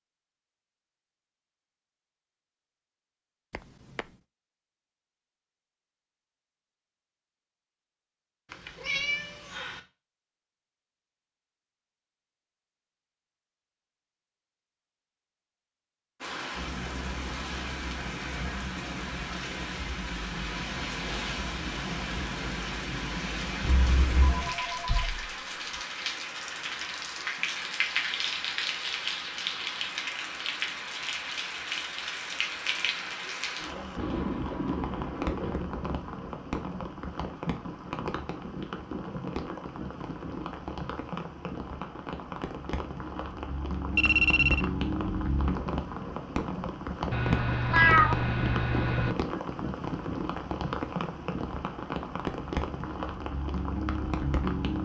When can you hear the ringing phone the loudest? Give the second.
44 s.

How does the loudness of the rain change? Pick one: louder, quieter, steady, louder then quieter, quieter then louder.
steady.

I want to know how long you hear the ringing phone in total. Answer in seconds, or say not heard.
3 s.